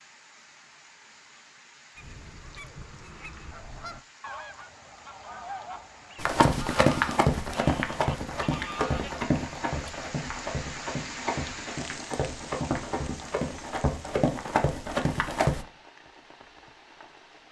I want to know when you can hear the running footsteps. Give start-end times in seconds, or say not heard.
6.2-15.7.